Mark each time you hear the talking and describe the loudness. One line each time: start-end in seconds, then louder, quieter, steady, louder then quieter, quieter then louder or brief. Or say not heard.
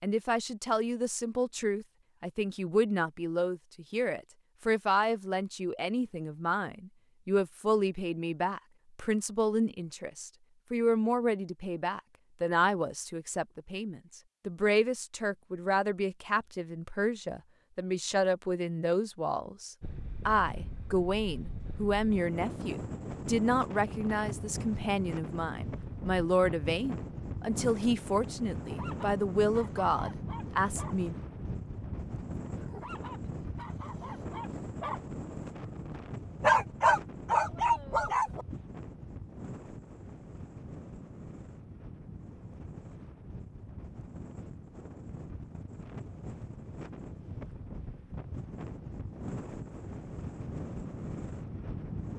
0.0-31.1 steady.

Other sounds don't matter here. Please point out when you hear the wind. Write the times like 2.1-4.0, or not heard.
19.8-52.1.